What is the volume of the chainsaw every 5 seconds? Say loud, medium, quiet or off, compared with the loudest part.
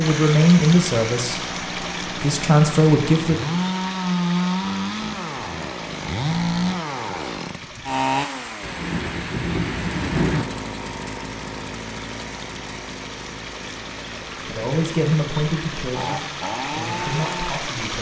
loud, loud, medium, loud.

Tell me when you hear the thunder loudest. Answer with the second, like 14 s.
10 s.